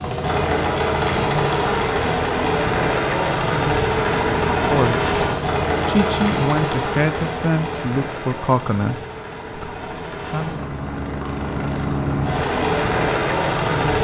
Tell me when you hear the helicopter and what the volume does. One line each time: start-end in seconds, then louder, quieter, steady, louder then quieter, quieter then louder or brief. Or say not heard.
0.0-14.0 quieter then louder.